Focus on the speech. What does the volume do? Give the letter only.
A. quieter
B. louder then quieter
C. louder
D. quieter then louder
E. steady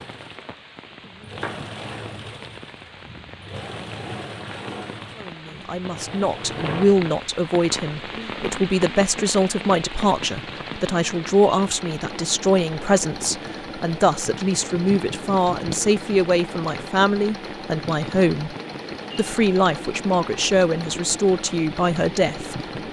E.